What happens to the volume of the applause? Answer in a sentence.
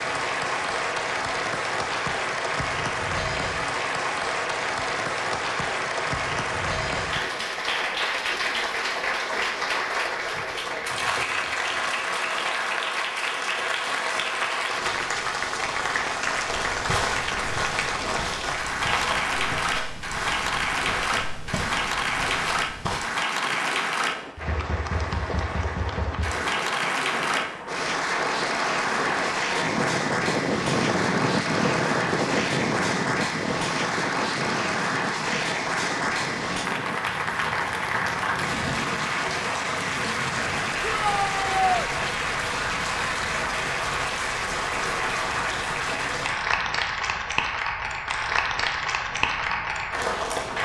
The volume of the applause stays about the same.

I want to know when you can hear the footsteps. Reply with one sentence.
You can hear the footsteps from 16.4 to 23.0 s.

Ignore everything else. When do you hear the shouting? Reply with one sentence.
The shouting can be heard from 40.8 to 41.9 s.